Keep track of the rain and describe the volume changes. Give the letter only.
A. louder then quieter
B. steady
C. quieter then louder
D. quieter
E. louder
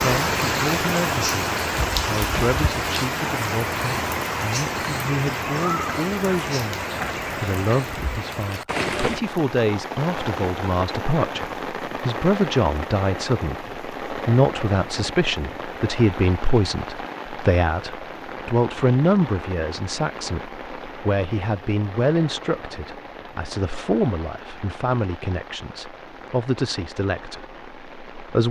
D.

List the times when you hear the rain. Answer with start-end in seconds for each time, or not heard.
0.0-28.4.